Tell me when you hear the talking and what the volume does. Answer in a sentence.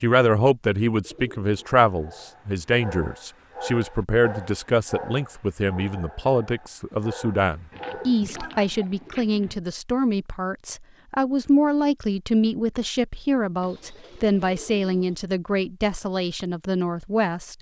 You can hear the talking from 0.0 to 17.5 s, at a steady volume.